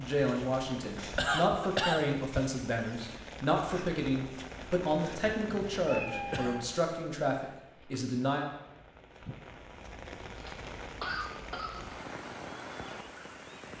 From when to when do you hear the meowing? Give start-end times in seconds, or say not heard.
5.5-6.7.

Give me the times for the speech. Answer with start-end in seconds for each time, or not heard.
0.0-8.5.